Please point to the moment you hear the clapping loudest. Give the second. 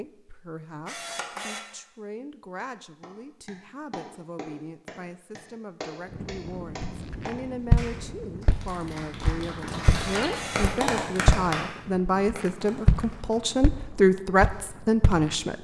11 s.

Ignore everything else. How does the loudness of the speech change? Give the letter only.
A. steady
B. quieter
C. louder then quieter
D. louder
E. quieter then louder
D.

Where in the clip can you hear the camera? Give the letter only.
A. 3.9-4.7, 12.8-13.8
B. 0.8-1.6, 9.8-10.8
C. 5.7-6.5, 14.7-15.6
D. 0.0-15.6
B.